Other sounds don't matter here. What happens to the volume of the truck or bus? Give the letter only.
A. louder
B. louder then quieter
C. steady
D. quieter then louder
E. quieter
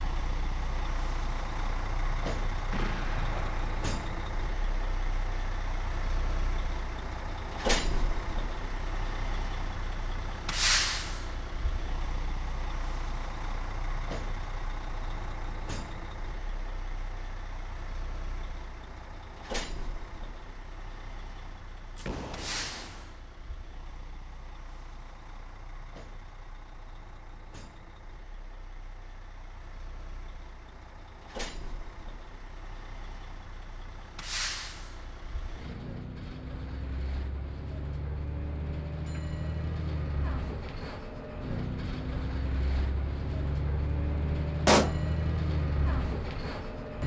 D.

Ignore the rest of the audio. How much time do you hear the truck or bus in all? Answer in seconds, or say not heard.
47 s.